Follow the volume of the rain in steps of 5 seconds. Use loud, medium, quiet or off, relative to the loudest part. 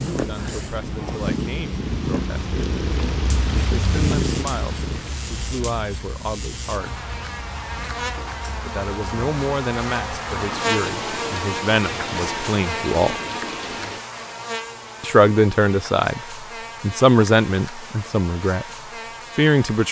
loud, medium, loud, off.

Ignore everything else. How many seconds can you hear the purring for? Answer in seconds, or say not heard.
5 s.